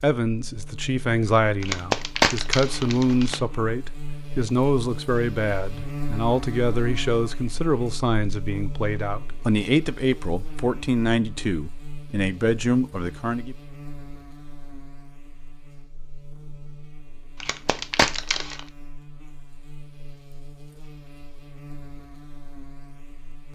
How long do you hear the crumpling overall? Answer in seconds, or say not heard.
3 s.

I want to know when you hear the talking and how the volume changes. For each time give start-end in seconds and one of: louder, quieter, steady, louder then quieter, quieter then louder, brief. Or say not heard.
0.0-13.6 steady.